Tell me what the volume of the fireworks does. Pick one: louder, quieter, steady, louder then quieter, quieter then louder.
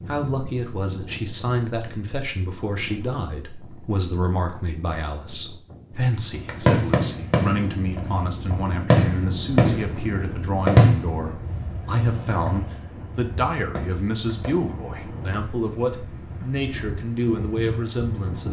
louder then quieter.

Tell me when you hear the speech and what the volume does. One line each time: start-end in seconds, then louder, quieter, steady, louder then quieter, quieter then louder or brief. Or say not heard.
0.1-18.4 steady.